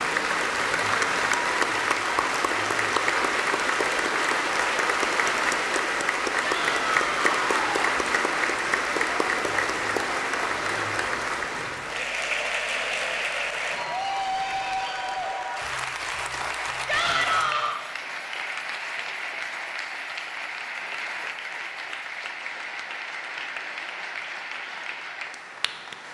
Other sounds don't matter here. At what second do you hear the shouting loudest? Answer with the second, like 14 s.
17 s.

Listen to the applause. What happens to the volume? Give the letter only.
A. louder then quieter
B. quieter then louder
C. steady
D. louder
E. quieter
E.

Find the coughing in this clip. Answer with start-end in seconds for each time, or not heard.
not heard.